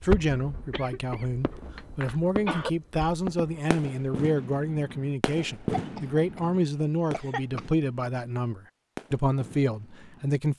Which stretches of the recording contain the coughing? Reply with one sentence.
The coughing can be heard from 0.7 to 2.7 s and from 5.7 to 7.7 s.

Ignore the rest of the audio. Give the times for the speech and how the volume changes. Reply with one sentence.
You can hear the speech from 0.0 to 10.5 s, at a steady volume.